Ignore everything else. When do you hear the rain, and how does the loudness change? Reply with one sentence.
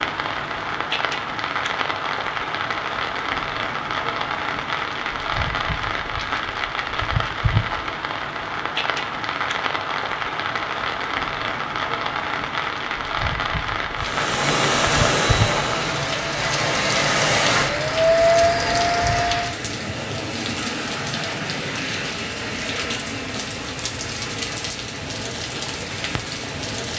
The rain can be heard from 0.0 to 26.9 s, at a steady volume.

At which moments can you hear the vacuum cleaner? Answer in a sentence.
You can hear the vacuum cleaner from 13.9 to 19.6 s.